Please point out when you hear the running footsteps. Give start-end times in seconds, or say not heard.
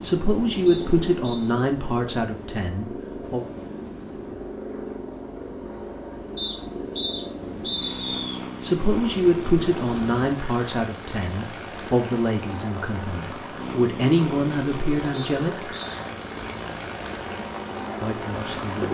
not heard.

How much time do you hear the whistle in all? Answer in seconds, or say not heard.
4 s.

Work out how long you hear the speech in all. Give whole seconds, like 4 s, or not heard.
11 s.